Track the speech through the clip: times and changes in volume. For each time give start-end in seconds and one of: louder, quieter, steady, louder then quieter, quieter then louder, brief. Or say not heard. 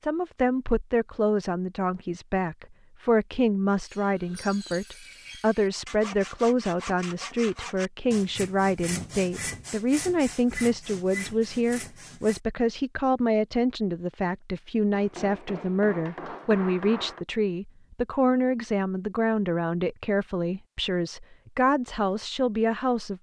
0.0-23.1 steady.